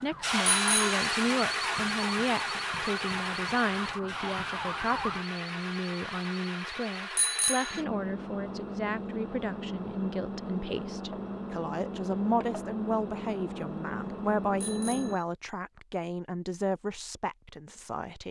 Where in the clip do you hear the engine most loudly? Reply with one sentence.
The volume of the engine peaks at 1 second.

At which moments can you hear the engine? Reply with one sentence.
You can hear the engine from 0.2 to 15.2 s.